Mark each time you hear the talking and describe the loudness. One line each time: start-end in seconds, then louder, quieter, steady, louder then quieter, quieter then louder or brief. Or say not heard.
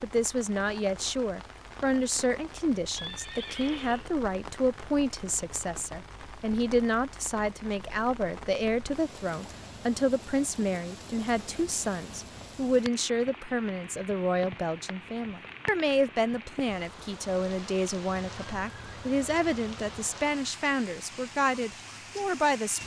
0.0-22.8 steady.